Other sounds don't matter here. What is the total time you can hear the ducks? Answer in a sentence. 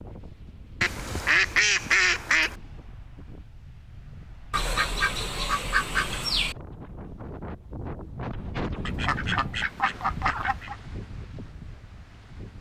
You can hear the ducks for 6 seconds altogether.